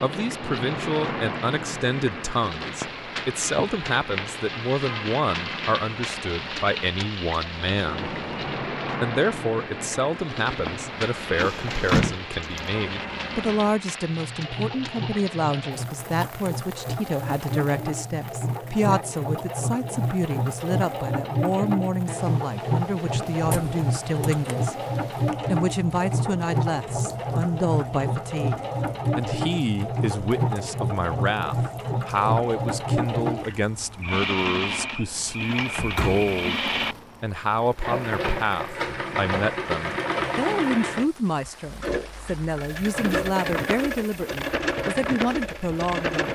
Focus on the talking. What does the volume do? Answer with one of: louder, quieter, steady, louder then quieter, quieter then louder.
steady.